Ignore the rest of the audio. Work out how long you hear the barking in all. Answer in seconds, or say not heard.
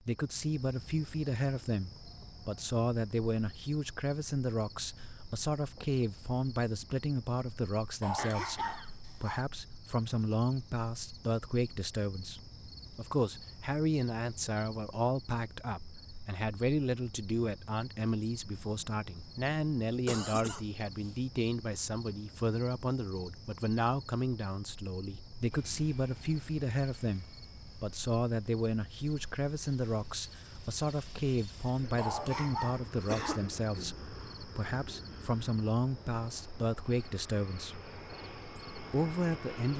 3 s.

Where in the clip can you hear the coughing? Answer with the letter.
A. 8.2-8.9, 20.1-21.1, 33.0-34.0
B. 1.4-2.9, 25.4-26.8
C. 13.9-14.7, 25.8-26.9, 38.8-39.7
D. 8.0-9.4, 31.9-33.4
A.